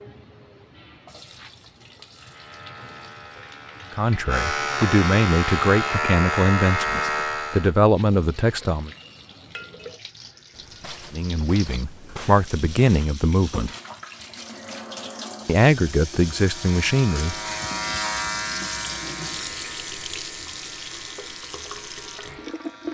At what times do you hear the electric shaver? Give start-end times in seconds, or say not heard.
2.1-7.8, 16.3-22.8.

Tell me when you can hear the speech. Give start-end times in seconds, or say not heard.
4.0-8.9, 11.1-13.7, 15.4-17.4.